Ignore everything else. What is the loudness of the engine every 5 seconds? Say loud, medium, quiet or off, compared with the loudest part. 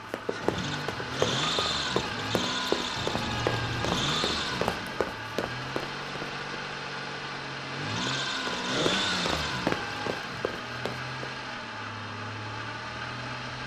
loud, loud, medium.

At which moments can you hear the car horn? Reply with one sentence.
You can hear the car horn from 3.0 to 4.2 s.